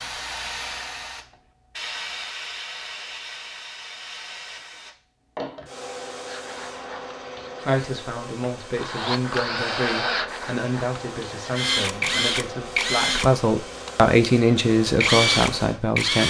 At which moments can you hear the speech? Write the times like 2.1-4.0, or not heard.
7.7-16.2.